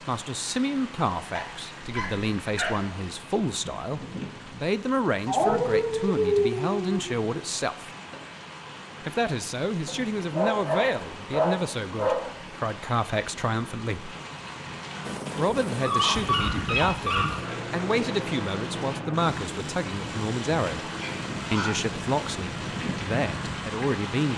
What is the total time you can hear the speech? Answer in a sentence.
You can hear the speech for 21 seconds altogether.